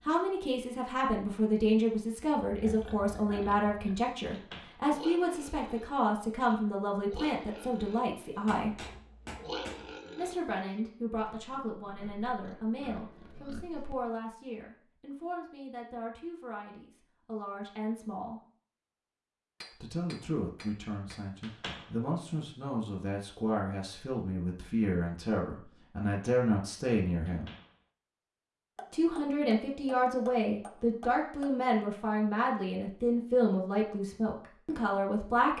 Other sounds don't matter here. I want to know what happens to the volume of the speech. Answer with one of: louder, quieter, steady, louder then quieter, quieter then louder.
quieter then louder.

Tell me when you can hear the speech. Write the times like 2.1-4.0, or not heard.
0.1-8.8, 10.2-18.4, 19.7-27.5, 28.9-35.5.